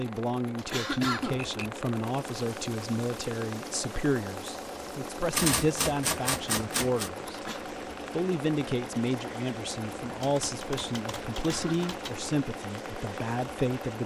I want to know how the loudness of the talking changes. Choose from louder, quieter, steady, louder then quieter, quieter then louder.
steady.